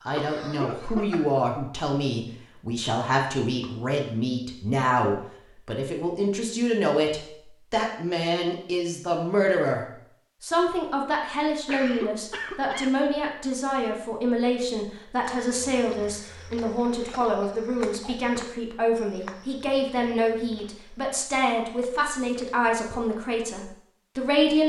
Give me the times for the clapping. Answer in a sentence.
The clapping can't be heard in this clip.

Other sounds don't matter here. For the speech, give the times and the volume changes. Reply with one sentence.
The speech can be heard from 0.0 to 24.6 s, at a steady volume.